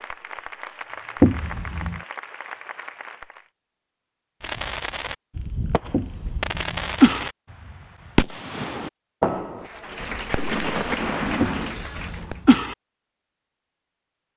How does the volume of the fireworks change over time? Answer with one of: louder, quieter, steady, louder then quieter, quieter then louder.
louder.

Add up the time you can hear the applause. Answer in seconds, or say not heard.
6 s.